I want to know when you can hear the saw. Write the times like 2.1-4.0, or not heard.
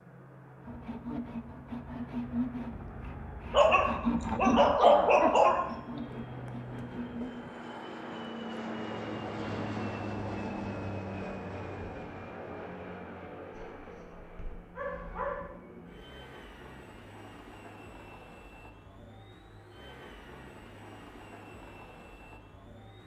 0.7-7.3.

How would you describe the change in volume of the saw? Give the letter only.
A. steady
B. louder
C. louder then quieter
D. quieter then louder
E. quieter
C.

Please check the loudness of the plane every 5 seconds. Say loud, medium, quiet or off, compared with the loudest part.
medium, loud, loud, medium, medium.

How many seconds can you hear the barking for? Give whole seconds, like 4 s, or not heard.
4 s.